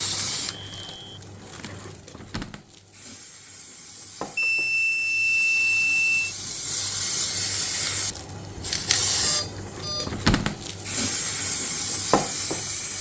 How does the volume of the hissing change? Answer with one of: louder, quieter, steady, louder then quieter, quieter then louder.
louder.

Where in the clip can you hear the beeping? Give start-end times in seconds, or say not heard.
0.3-1.1, 4.3-6.2, 9.2-10.2.